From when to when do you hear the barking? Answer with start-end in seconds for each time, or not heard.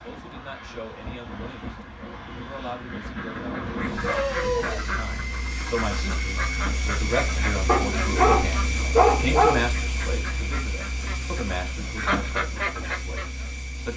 3.8-5.4, 7.7-9.7.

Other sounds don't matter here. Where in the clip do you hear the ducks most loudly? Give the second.
12 s.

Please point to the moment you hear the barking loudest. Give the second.
9 s.